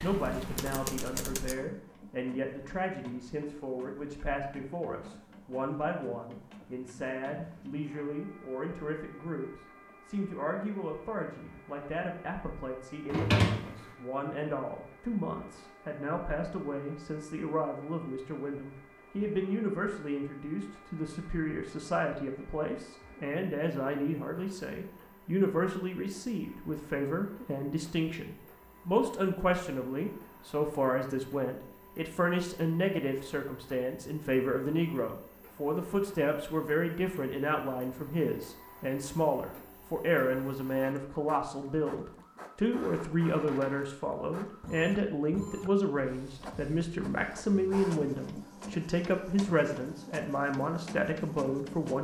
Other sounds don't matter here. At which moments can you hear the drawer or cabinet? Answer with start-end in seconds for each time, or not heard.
13.1-13.8.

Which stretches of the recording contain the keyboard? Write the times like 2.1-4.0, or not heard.
0.0-1.6.